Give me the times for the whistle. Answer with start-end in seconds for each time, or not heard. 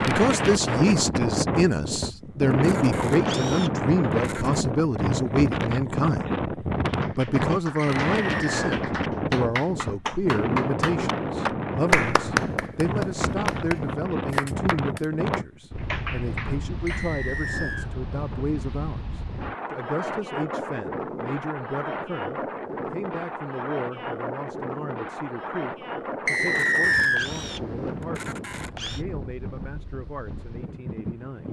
8.0-8.6, 16.9-17.9, 26.2-27.3.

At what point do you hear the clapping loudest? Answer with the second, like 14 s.
12 s.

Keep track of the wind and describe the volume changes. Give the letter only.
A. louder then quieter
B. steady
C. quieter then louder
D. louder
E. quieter
E.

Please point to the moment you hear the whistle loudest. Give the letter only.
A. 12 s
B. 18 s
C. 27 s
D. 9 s
C.